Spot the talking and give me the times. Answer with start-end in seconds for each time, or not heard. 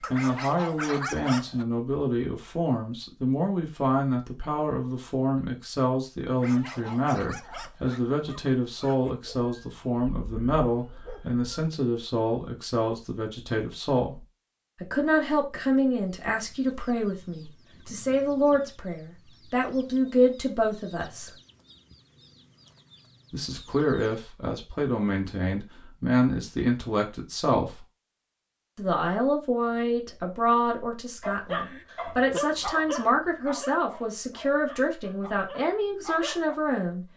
0.1-14.2, 14.8-21.3, 23.3-27.9, 28.8-37.0.